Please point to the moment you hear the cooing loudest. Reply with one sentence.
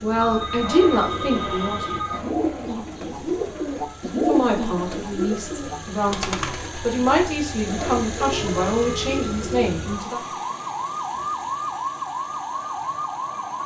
The loudest moment of the cooing is at 4 seconds.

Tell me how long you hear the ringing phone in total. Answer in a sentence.
You can hear the ringing phone for 3 seconds altogether.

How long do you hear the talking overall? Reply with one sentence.
You can hear the talking for 8 seconds altogether.